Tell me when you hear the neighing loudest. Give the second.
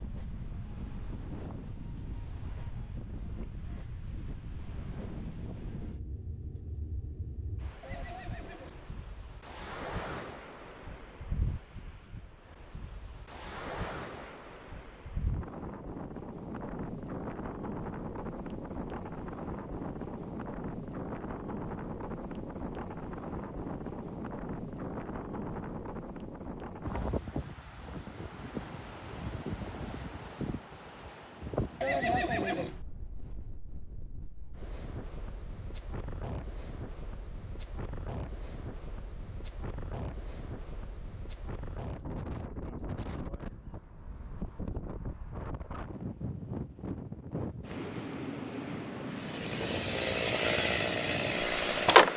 32 s.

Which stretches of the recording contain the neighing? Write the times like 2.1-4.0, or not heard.
7.8-9.0, 31.8-32.8.